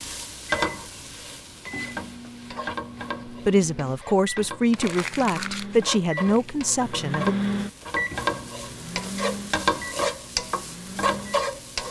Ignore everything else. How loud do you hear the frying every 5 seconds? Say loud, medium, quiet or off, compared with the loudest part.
medium, loud, loud.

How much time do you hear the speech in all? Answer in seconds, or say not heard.
4 s.